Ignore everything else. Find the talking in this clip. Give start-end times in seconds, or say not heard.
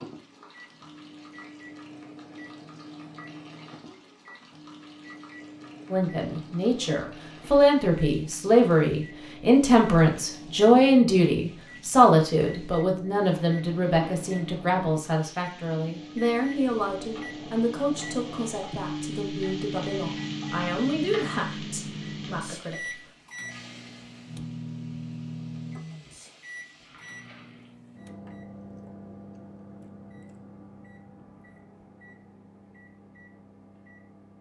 5.9-23.0.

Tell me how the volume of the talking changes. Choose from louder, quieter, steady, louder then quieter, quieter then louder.
quieter.